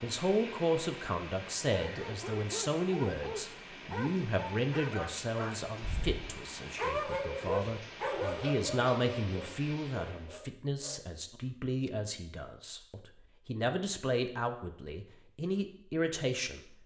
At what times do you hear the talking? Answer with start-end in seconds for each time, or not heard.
0.0-16.6.